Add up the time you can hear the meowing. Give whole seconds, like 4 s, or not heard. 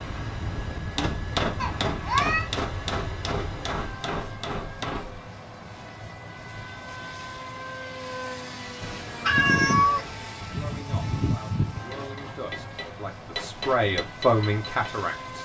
2 s.